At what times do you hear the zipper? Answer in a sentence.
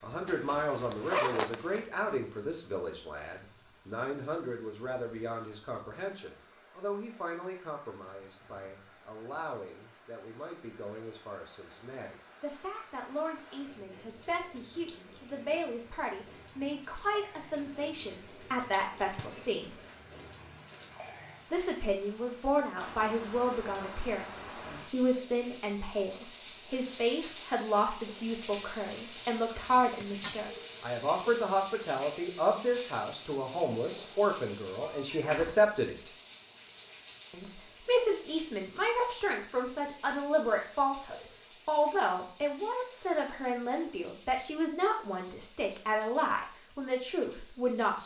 The zipper can be heard from 0.2 to 1.9 s and from 29.6 to 30.4 s.